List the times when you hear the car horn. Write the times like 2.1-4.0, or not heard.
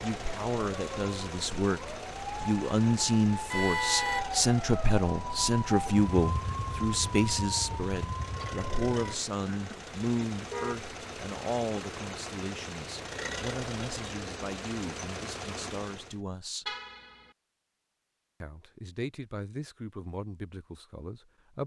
3.5-4.2, 9.4-10.8, 16.6-17.2.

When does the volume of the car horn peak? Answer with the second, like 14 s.
4 s.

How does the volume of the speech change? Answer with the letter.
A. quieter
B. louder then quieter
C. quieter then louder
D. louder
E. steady
A.